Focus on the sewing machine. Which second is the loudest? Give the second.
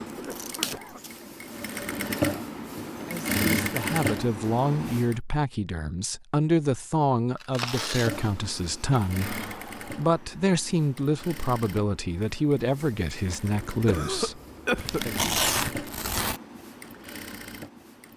4 s.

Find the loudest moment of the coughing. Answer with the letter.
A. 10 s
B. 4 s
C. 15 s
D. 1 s
C.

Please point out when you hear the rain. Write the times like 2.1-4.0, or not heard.
not heard.